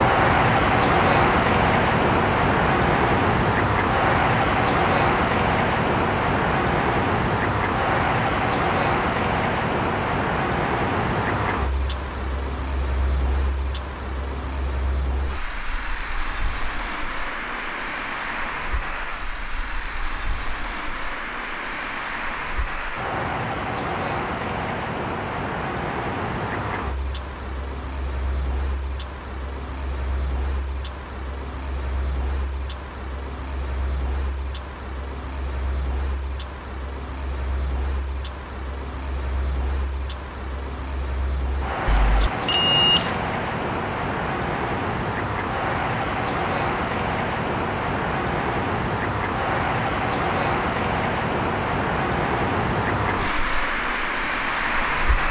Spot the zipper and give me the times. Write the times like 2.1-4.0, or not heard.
not heard.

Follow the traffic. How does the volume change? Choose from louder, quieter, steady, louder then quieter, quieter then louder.
quieter then louder.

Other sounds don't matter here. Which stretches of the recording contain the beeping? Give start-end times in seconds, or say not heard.
41.9-43.1.